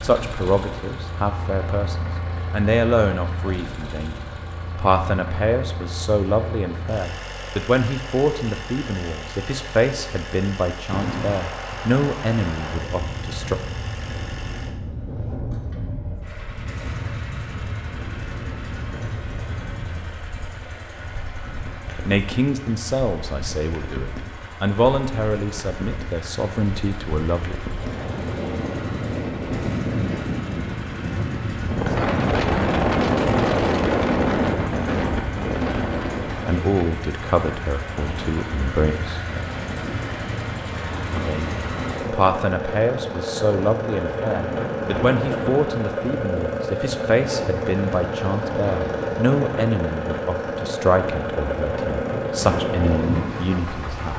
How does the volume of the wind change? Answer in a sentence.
The loudness of the wind goes up, then down.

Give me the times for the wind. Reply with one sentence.
You can hear the wind from 10.8 to 54.1 s.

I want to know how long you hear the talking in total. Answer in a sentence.
The talking can be heard for 35 seconds in total.